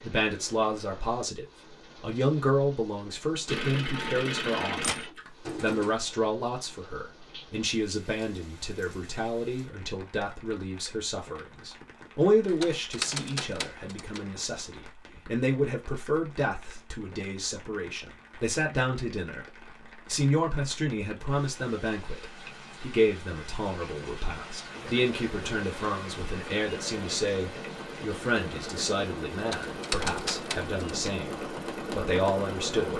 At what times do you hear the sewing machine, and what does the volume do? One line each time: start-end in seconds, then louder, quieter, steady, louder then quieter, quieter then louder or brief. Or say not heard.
3.5-6.0 brief
24.7-32.9 louder.